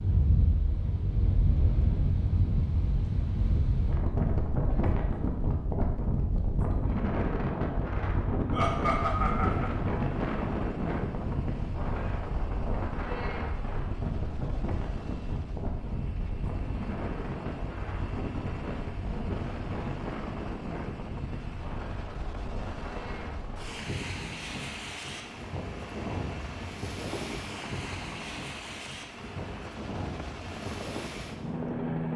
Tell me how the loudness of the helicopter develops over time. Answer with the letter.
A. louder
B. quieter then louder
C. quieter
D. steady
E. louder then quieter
A.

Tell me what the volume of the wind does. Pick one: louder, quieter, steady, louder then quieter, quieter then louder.
quieter.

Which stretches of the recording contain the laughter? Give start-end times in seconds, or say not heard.
8.5-9.7.